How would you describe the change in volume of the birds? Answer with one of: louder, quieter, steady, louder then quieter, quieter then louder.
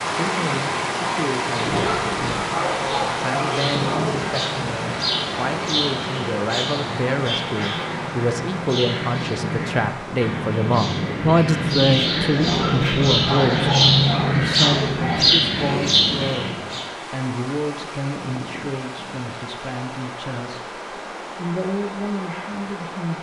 louder.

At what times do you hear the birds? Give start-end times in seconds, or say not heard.
0.0-16.9.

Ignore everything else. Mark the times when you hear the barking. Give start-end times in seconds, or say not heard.
1.6-4.3, 12.3-15.2.